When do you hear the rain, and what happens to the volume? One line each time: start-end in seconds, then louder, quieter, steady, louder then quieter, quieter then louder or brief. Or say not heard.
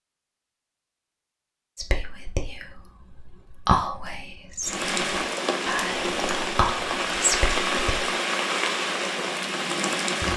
4.6-10.3 steady.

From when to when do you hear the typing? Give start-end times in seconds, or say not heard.
not heard.